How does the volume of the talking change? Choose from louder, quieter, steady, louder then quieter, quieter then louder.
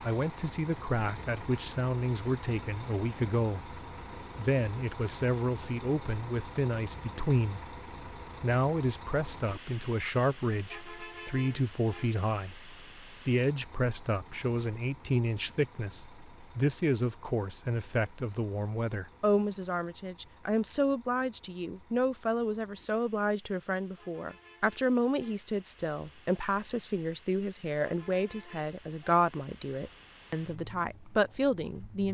steady.